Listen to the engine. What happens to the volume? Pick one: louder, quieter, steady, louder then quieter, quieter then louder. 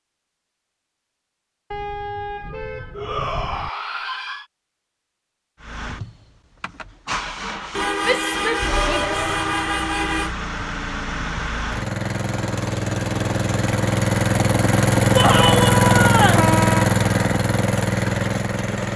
louder.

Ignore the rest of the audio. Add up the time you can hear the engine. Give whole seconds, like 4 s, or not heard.
13 s.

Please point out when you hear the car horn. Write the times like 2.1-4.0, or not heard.
1.7-3.7, 7.8-10.3, 16.3-16.9.